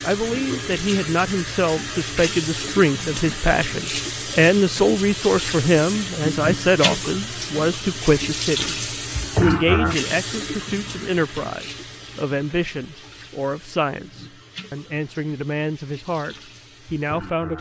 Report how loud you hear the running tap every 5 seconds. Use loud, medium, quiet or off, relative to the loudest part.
loud, loud, medium, quiet.